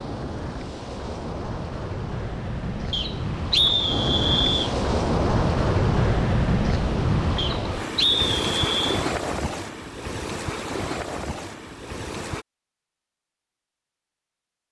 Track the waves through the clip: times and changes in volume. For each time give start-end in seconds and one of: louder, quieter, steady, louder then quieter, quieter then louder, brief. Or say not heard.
0.0-12.4 louder then quieter.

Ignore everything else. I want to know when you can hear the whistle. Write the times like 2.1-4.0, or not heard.
2.9-4.8, 7.3-9.0.